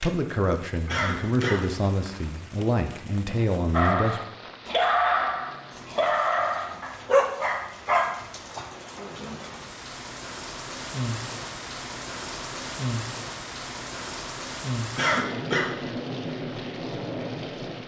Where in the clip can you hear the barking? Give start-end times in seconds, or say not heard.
3.7-9.4.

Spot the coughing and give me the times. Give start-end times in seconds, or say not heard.
0.8-1.6, 14.9-15.7.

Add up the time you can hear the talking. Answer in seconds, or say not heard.
4 s.